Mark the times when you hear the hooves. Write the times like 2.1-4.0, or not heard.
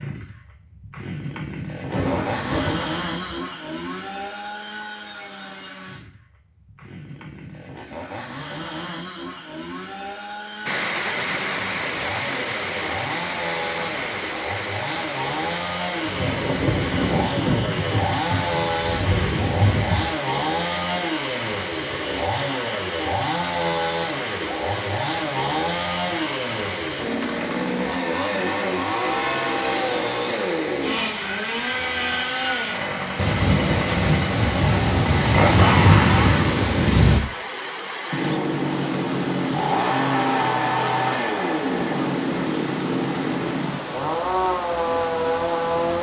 not heard.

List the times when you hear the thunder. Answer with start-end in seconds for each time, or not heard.
1.9-3.4, 16.1-20.1, 33.1-37.2.